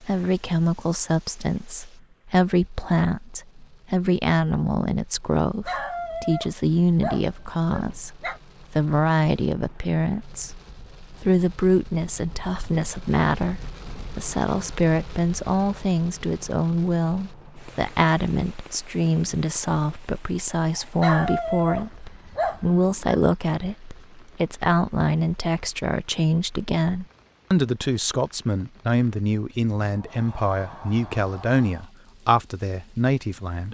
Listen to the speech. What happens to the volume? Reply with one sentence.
The loudness of the speech stays about the same.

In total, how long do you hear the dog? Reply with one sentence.
The dog can be heard for 5 seconds in total.